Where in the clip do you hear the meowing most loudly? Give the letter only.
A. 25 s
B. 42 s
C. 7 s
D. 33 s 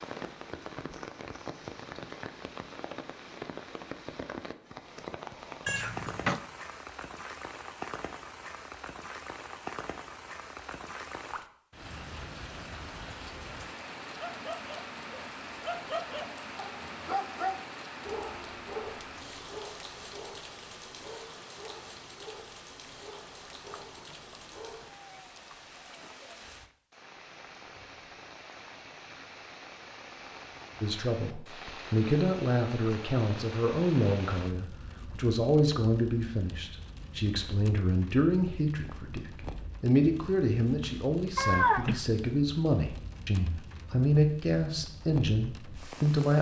B.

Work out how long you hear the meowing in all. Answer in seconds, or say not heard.
4 s.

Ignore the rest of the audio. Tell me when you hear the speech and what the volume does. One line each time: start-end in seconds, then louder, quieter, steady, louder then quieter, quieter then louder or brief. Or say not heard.
30.8-46.3 steady.